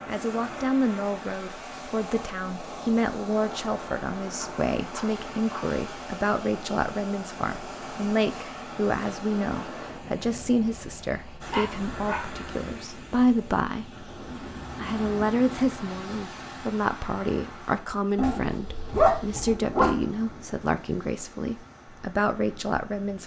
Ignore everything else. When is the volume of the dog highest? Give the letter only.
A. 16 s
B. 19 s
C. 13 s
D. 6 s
B.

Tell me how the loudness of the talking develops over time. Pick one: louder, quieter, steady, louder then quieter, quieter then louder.
steady.